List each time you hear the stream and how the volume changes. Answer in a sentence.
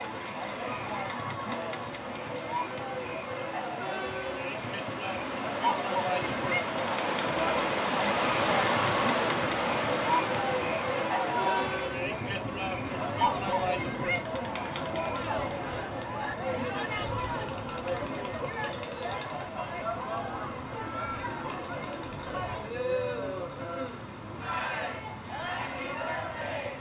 The stream can be heard from 0.0 to 26.7 s, getting louder then quieter.